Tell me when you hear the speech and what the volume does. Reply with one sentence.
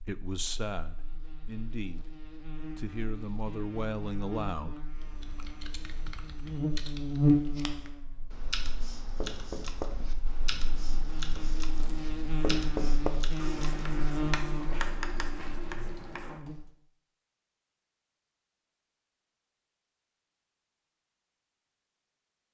The speech can be heard from 0.0 to 4.8 s, getting quieter then louder.